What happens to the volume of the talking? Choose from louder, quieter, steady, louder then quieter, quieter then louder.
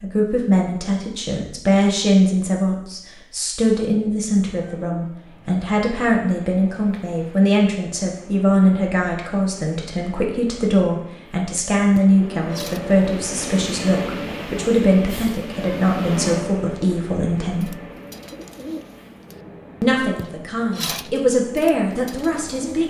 steady.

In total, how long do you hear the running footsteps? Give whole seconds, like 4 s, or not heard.
not heard.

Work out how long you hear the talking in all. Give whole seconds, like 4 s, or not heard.
21 s.